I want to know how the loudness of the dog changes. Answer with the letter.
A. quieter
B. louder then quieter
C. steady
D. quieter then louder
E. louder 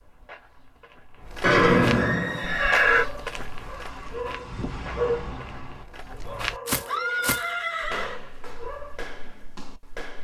B.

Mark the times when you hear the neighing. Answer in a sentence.
You can hear the neighing from 1.4 to 3.0 s and from 6.8 to 8.2 s.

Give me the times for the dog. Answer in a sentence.
You can hear the dog from 2.2 to 9.2 s.